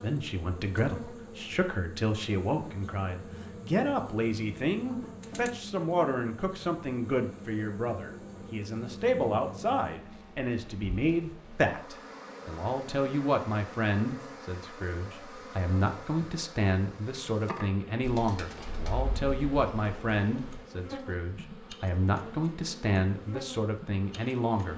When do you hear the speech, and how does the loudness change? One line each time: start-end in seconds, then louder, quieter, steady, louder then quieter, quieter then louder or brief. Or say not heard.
0.0-24.7 steady.